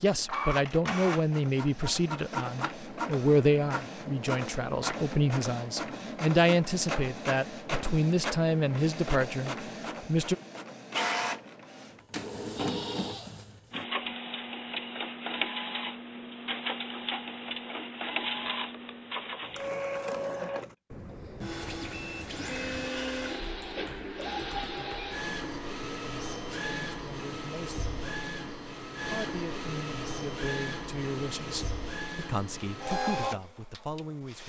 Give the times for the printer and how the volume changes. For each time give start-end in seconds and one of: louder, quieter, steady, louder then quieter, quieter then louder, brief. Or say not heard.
0.0-34.4 steady.